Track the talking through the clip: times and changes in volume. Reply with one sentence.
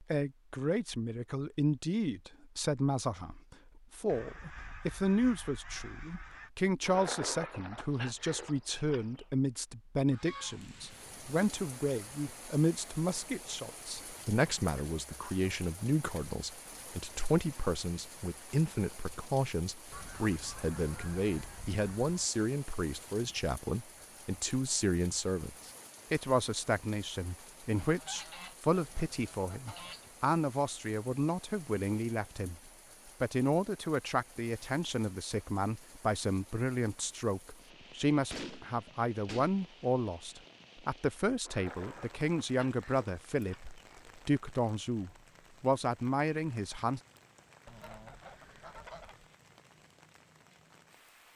The talking can be heard from 0.0 to 32.5 s, at a steady volume; and from 33.2 to 47.0 s, at a steady volume.